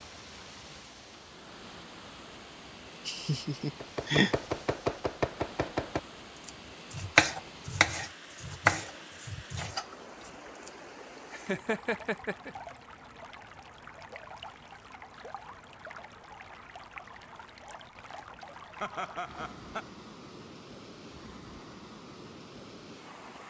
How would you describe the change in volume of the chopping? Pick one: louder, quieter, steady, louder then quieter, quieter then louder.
louder then quieter.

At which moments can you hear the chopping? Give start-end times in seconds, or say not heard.
3.8-10.7.